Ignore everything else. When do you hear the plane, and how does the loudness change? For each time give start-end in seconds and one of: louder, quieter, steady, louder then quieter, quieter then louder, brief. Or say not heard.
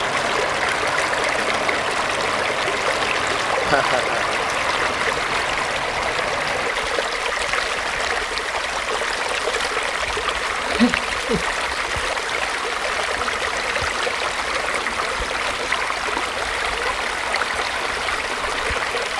0.0-6.7 steady.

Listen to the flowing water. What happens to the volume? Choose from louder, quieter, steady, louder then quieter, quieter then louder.
steady.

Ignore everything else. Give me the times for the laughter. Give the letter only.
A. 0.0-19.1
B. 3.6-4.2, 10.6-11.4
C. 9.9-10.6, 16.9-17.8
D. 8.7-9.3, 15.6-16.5
B.